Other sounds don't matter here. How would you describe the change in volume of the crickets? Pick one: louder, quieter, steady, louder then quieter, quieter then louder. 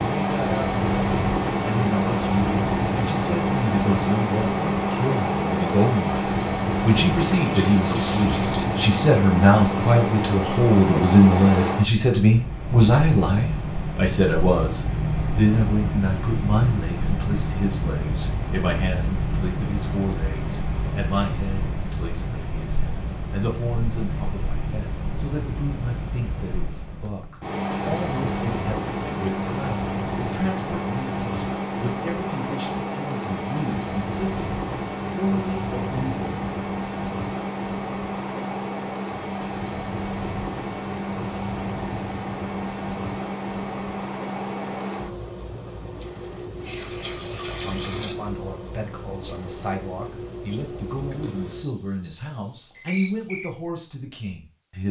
quieter.